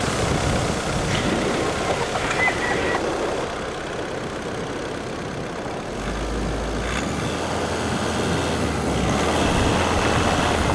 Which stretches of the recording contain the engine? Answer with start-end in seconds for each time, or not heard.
0.0-10.7.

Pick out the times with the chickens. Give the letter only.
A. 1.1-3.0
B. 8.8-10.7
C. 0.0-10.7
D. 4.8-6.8
A.